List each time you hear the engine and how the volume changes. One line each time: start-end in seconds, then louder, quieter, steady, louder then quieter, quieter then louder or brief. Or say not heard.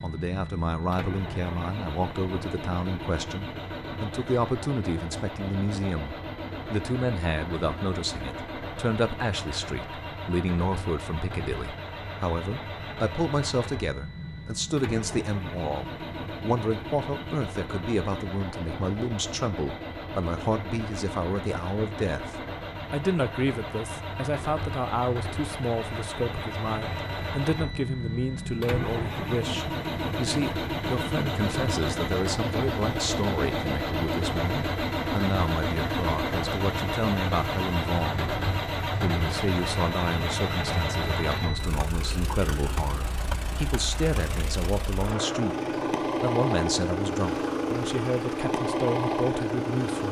0.0-50.0 louder.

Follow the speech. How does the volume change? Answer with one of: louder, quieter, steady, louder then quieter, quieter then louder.
steady.